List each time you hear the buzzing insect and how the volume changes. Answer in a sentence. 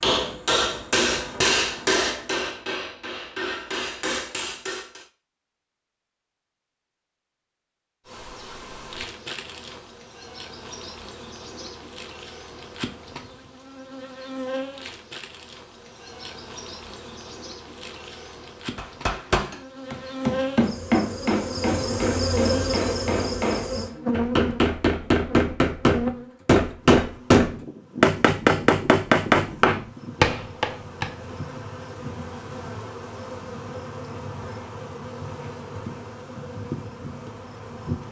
You can hear the buzzing insect from 8.1 to 38.0 s, getting louder then quieter.